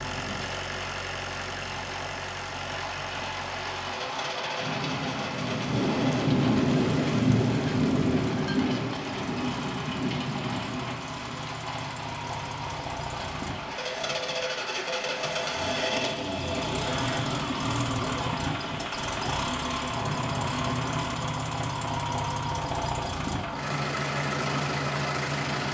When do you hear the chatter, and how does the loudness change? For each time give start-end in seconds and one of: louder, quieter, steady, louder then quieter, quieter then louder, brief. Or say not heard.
not heard.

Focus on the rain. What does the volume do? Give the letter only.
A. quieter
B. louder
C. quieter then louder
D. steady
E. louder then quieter
E.